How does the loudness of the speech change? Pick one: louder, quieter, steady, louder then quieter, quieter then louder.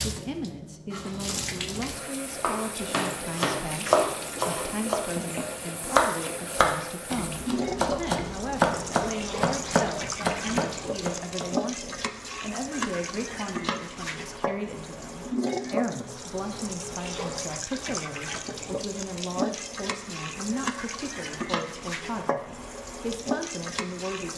steady.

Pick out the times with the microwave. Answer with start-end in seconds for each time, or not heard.
not heard.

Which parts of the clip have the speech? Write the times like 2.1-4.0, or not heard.
0.0-24.3.